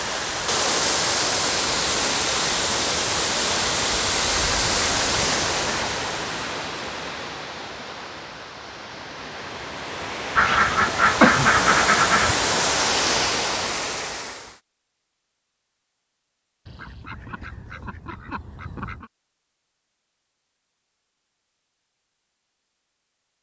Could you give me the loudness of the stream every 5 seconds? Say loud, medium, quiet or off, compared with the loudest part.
loud, medium, loud, off, off.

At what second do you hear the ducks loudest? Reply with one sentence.
The loudest moment of the ducks is at 11 seconds.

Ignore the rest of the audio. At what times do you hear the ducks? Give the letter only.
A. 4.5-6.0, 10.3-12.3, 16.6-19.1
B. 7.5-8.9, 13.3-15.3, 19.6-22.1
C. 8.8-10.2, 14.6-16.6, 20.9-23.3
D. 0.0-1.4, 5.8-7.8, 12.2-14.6
A.